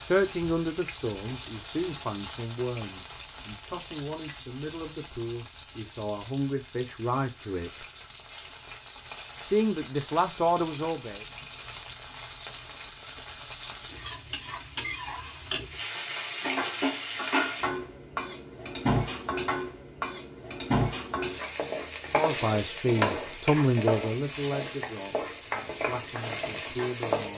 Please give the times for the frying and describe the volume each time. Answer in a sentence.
The frying can be heard from 0.0 to 27.3 s, getting louder.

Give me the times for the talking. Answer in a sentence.
The talking can be heard from 0.0 to 7.8 s, from 9.4 to 11.2 s and from 22.1 to 27.3 s.